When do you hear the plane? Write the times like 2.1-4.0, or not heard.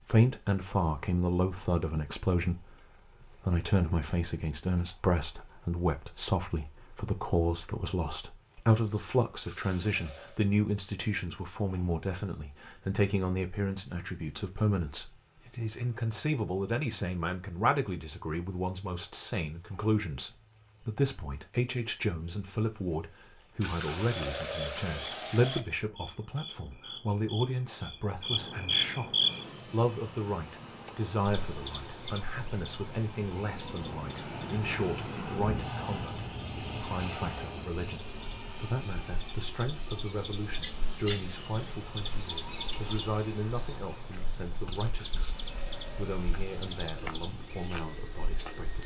29.2-48.8.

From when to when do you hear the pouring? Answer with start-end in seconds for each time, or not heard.
9.4-10.4, 23.6-25.6, 45.0-46.9.